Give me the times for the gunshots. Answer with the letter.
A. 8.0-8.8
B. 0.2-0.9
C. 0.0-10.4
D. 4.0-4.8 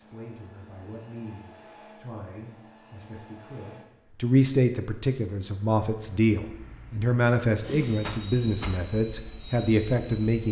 A.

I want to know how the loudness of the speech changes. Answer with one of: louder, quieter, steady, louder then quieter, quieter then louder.
louder.